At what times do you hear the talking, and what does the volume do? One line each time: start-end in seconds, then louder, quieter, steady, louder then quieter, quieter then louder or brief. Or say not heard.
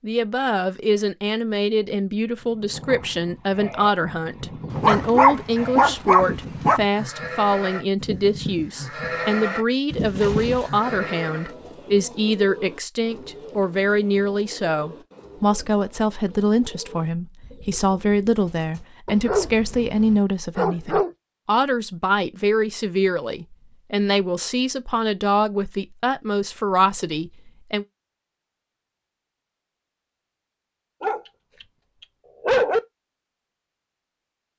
0.0-27.9 steady.